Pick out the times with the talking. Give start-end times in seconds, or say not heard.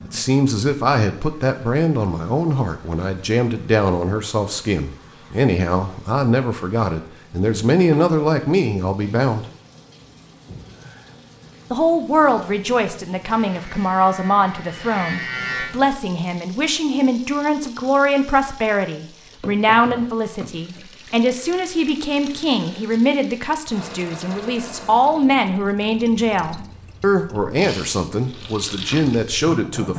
0.0-9.4, 11.7-29.9.